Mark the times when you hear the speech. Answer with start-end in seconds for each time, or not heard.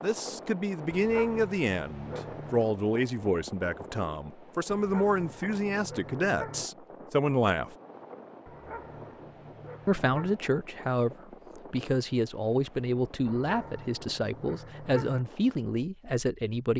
0.0-7.8, 9.8-16.7.